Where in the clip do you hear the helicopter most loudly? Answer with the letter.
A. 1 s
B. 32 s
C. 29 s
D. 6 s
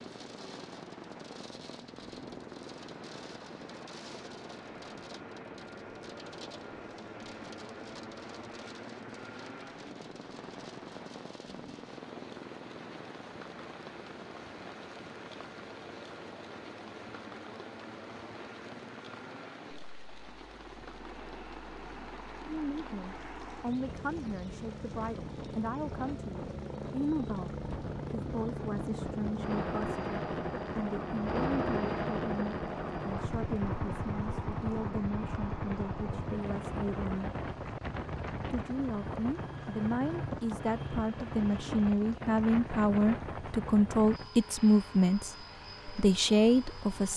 B.